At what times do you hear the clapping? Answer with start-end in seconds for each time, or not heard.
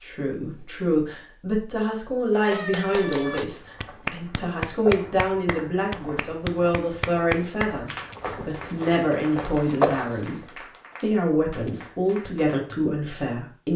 2.4-12.6.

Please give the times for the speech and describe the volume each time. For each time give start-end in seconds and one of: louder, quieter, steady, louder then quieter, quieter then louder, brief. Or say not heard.
0.0-13.7 steady.